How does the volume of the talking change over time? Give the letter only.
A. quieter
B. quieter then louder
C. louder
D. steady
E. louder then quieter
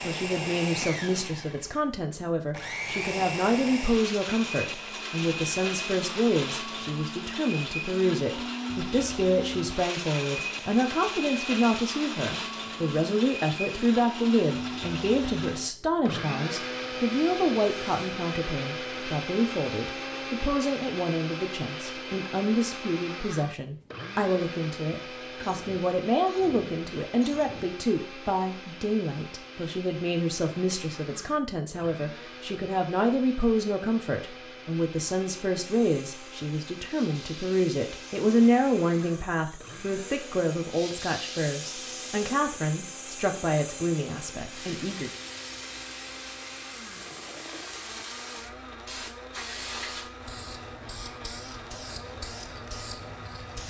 D.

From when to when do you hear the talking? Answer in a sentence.
You can hear the talking from 0.0 to 45.1 s.